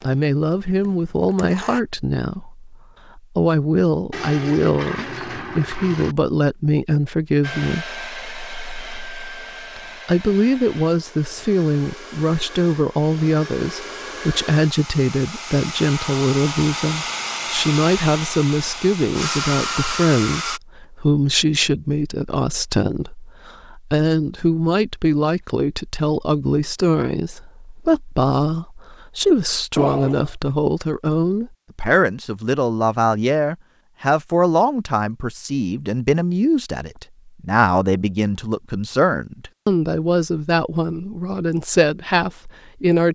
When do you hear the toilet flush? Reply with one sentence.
The toilet flush can be heard from 4.1 to 6.2 s and from 29.8 to 30.4 s.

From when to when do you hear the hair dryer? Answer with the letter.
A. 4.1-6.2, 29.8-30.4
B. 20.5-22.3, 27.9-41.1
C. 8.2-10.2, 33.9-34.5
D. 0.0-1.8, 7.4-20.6
D.